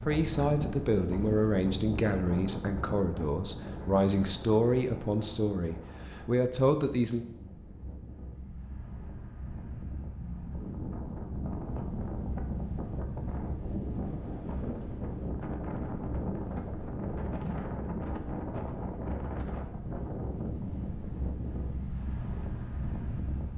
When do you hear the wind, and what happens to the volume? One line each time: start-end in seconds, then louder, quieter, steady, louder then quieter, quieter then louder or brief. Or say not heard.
0.0-23.5 quieter then louder.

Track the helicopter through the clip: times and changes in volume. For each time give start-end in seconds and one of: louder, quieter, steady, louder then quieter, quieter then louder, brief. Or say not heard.
not heard.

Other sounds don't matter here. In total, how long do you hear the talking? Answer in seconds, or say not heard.
7 s.